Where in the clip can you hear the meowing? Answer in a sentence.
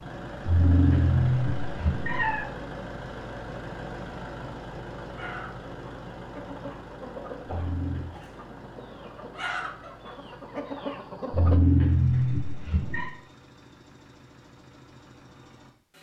The meowing can be heard from 0.5 to 2.5 s, from 7.5 to 8.2 s and from 11.3 to 13.1 s.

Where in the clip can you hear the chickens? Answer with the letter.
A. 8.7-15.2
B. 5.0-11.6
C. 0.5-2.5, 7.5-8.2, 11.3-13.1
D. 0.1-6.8
B.